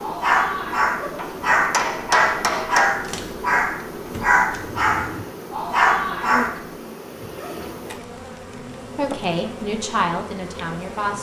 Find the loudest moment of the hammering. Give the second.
3 s.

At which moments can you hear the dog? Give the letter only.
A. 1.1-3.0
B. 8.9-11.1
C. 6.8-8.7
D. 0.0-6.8
D.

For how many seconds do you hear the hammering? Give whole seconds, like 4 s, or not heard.
2 s.